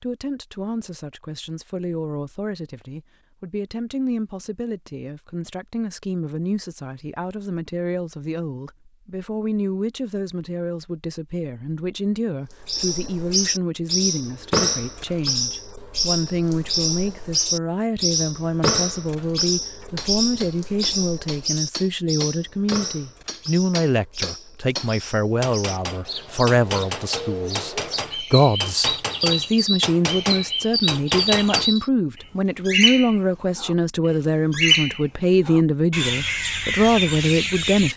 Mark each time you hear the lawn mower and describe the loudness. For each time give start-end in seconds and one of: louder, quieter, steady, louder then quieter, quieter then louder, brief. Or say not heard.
not heard.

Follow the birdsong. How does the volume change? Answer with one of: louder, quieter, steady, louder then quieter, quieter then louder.
quieter then louder.